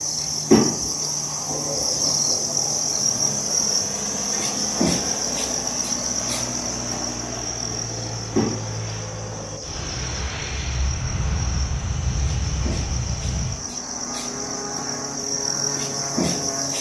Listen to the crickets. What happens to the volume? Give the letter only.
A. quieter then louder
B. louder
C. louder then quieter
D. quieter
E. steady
A.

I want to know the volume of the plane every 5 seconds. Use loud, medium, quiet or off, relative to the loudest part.
medium, loud, loud, loud.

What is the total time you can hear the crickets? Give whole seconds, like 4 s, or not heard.
17 s.